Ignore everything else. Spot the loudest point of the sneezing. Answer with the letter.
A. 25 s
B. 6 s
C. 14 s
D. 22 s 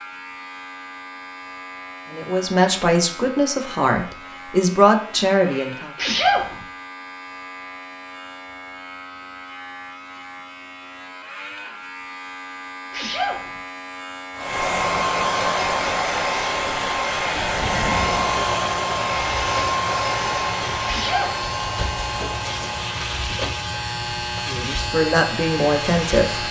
B.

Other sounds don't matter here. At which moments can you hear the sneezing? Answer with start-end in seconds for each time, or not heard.
6.0-6.5, 12.9-13.5, 20.9-21.4.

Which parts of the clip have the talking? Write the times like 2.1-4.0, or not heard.
2.1-5.9, 24.4-26.4.